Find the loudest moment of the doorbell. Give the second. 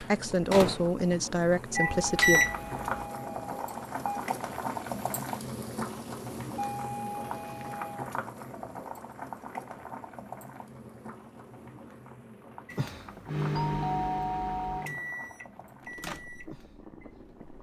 14 s.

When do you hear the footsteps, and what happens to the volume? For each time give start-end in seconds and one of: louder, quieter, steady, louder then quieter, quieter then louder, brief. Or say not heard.
not heard.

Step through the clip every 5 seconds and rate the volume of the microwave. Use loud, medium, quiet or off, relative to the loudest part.
loud, off, medium, quiet.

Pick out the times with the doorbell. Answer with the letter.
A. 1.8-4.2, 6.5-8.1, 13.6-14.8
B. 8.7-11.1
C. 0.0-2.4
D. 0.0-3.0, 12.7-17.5
A.